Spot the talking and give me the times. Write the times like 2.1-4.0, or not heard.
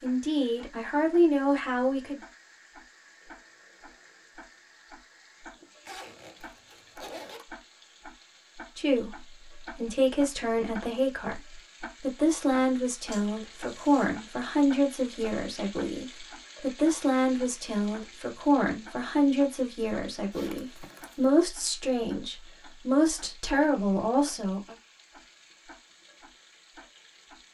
0.0-2.2, 8.8-24.8.